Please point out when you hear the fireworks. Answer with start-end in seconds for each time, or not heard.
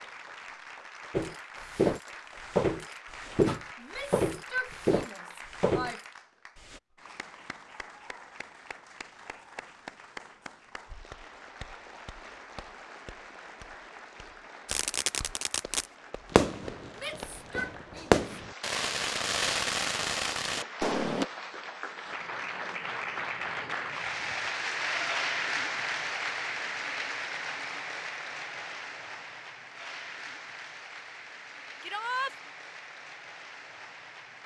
14.7-21.2.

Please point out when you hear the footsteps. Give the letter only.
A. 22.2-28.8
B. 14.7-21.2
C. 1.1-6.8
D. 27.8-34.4
C.